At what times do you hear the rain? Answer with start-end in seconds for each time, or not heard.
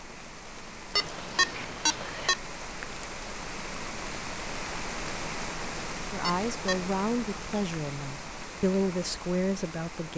0.0-10.1.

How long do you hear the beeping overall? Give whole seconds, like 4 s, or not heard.
2 s.